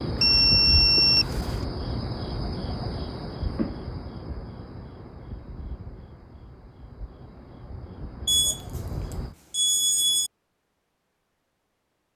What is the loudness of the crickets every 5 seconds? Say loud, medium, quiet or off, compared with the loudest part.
loud, medium, off.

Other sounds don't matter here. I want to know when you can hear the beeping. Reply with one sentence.
The beeping can be heard from 0.2 to 1.6 s, from 8.2 to 8.8 s and from 9.5 to 10.3 s.